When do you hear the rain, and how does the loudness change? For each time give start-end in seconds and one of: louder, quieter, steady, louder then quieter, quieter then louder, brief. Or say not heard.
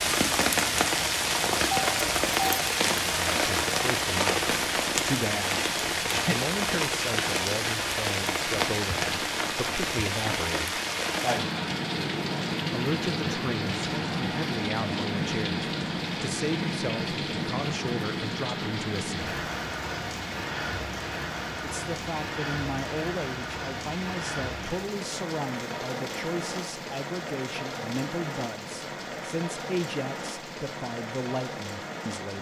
0.0-32.3 quieter.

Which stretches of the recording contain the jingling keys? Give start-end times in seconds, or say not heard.
1.7-2.6.